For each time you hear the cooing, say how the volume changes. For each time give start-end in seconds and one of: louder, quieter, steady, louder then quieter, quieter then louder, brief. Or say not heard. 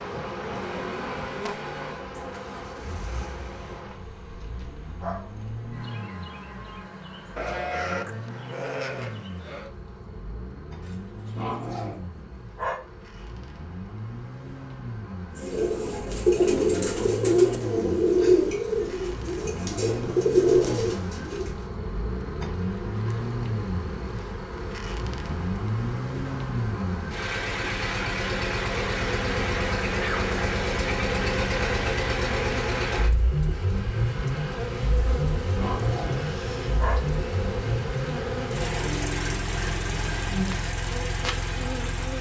15.3-21.6 quieter then louder.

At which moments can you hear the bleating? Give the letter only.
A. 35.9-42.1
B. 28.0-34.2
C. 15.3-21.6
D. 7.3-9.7
D.